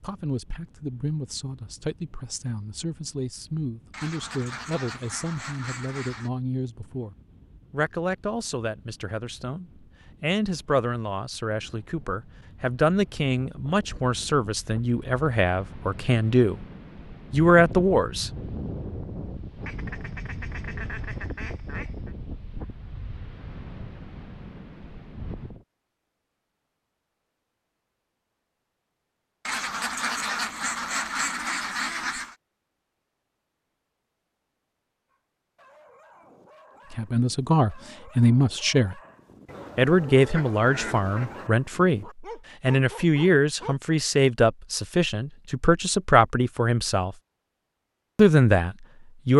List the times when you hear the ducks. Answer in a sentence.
The ducks can be heard from 3.9 to 6.3 s, from 19.6 to 22.1 s, from 29.4 to 32.4 s and from 39.5 to 41.5 s.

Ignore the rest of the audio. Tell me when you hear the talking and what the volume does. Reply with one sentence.
You can hear the talking from 0.0 to 16.6 s, getting louder; briefly from 17.3 to 18.3 s; briefly from 36.9 to 39.0 s; from 39.8 to 47.1 s, at a steady volume; and briefly from 48.1 to 49.3 s.